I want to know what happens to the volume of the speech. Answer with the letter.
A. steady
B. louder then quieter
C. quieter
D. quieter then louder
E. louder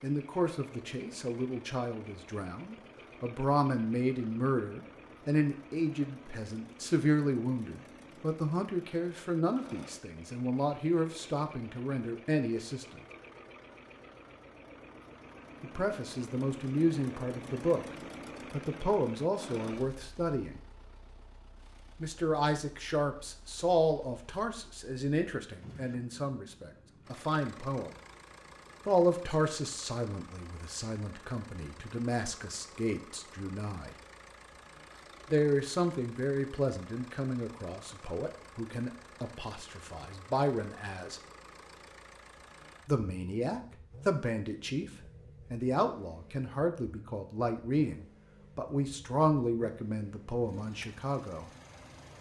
A.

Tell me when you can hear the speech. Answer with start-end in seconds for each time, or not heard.
0.0-13.0, 15.6-20.6, 22.0-27.9, 28.9-34.0, 35.3-41.2, 42.9-51.5.